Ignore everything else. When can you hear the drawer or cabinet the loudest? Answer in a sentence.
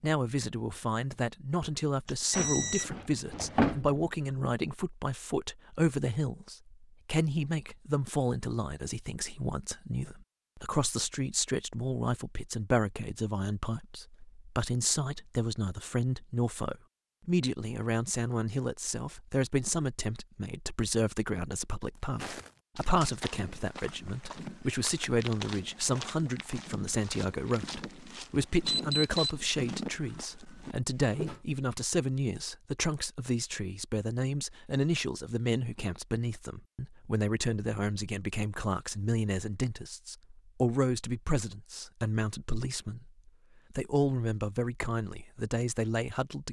The loudest moment of the drawer or cabinet is at 4 seconds.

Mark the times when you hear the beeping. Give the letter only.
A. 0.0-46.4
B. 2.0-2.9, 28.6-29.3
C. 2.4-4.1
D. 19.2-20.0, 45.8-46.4
B.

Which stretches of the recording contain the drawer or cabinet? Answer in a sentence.
The drawer or cabinet can be heard from 2.4 to 4.1 s.